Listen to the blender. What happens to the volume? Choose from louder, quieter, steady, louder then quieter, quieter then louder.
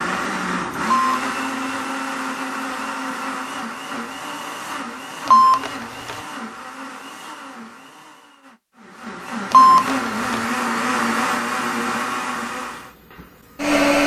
quieter then louder.